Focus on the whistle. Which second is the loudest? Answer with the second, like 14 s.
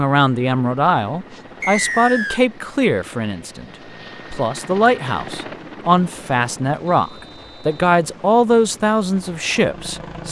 2 s.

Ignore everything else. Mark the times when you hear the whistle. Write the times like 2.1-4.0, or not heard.
1.6-2.4, 6.8-7.7.